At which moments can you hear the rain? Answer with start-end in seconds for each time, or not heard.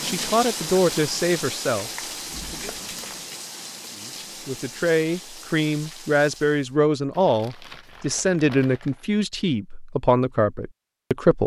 0.0-6.8.